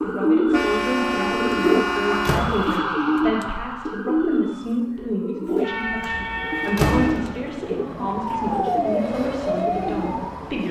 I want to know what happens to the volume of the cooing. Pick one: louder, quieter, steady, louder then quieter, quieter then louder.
quieter.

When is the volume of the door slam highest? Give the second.
7 s.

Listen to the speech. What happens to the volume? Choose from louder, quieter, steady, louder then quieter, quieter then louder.
steady.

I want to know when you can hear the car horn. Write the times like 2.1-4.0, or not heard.
0.5-2.5, 5.6-7.1.